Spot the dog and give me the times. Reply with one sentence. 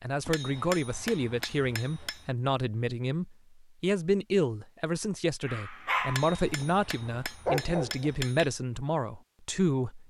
You can hear the dog from 5.5 to 6.5 s and from 7.5 to 8.1 s.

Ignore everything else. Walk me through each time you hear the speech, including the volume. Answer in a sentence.
You can hear the speech from 0.0 to 10.0 s, at a steady volume.